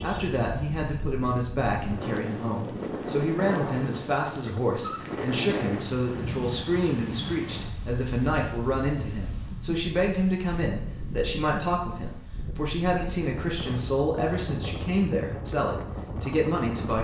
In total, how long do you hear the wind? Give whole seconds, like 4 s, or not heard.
17 s.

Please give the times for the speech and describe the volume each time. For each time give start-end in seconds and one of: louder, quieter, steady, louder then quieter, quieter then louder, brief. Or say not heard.
0.0-16.9 steady.